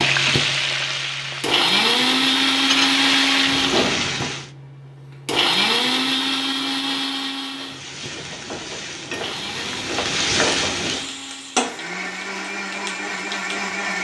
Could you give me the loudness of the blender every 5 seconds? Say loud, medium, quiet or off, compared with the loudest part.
loud, loud, medium.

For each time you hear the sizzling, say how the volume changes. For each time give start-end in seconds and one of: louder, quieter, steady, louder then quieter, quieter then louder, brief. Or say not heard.
0.0-4.5 quieter then louder
7.5-14.0 louder then quieter.